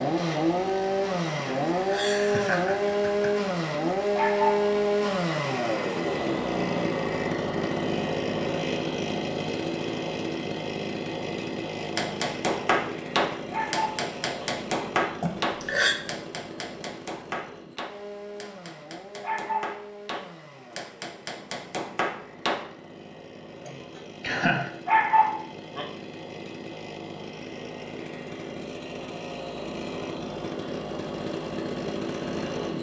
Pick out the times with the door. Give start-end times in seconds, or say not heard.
not heard.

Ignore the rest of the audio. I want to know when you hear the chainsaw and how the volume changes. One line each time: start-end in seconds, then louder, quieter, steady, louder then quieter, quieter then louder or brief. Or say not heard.
0.0-32.7 quieter then louder.